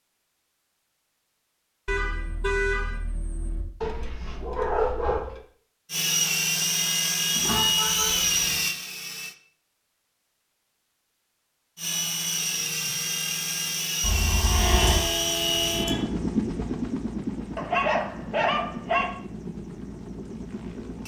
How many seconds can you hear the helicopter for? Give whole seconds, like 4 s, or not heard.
13 s.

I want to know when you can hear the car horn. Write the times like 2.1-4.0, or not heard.
1.9-3.6, 7.3-8.6, 14.0-16.1.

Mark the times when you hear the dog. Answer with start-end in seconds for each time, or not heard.
3.8-5.4, 17.6-19.1.